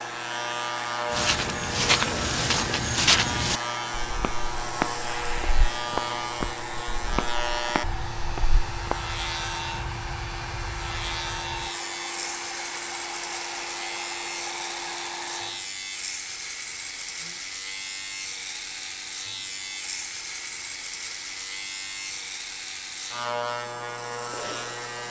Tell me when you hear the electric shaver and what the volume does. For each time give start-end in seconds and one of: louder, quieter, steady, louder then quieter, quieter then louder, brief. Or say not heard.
0.0-25.0 steady.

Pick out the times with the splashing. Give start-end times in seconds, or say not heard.
not heard.